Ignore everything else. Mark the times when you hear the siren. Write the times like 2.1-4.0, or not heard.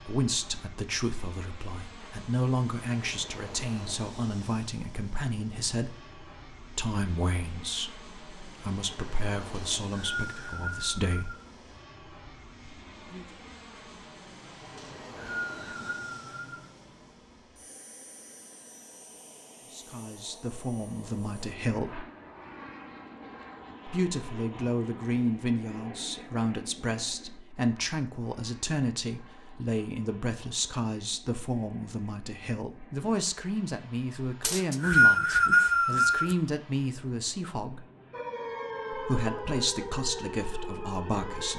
38.1-41.5.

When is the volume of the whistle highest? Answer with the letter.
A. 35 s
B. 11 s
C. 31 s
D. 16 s
A.